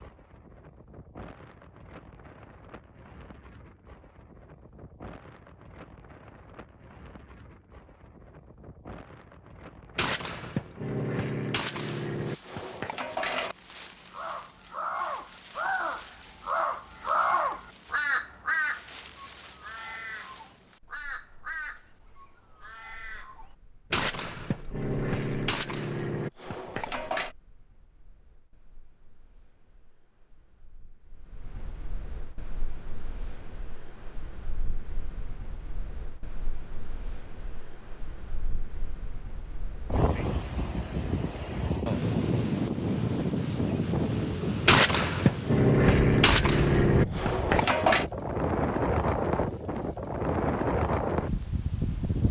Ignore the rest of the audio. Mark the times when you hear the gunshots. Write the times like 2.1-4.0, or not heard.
9.9-13.6, 23.9-27.4, 44.6-48.0.